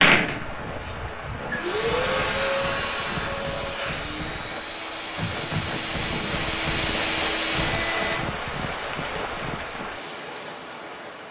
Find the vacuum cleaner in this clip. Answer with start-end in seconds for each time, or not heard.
0.0-8.2.